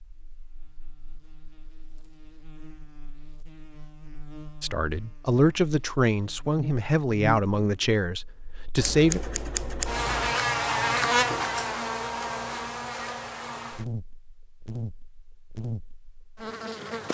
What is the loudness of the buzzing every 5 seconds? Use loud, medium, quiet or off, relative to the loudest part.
quiet, medium, loud, medium.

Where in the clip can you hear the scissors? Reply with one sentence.
You can hear the scissors from 8.8 to 10.3 s.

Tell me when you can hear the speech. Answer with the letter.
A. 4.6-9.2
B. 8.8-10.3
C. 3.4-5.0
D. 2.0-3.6
A.